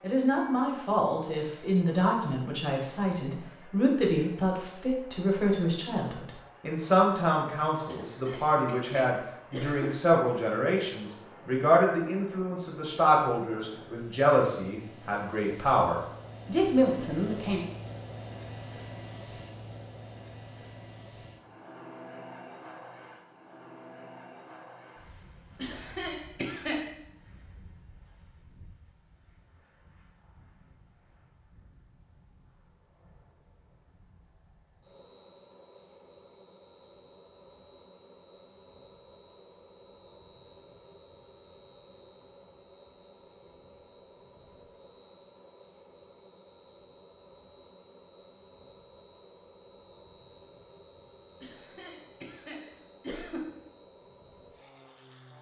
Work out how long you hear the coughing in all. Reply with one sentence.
You can hear the coughing for 5 seconds altogether.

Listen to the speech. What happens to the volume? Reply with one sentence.
The volume of the speech stays about the same.